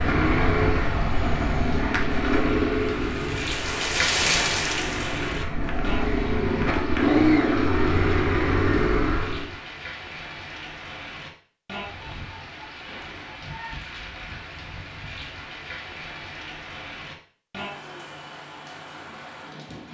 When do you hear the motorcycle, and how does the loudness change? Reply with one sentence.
You can hear the motorcycle from 0.0 to 9.5 s, getting quieter then louder.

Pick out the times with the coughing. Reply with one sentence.
The coughing can't be heard in this clip.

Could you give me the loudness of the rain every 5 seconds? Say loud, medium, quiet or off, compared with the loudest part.
loud, medium, medium, medium.